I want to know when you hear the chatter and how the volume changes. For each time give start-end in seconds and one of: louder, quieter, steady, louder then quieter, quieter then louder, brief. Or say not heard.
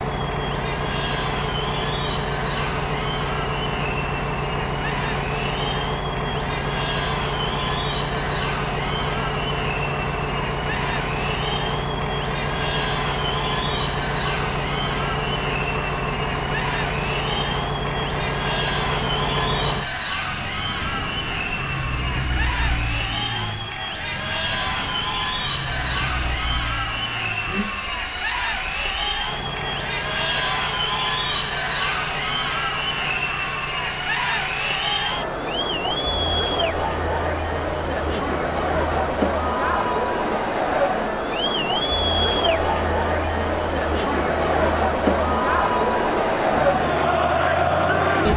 0.0-48.3 louder.